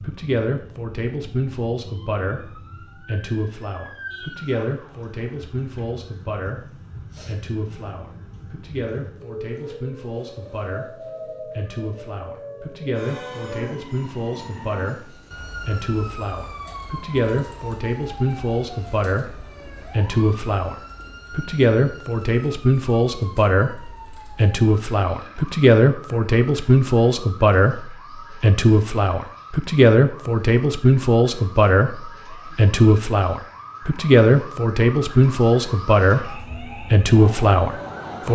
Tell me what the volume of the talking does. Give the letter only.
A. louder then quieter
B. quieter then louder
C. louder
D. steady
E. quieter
C.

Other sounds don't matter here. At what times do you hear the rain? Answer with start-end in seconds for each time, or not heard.
not heard.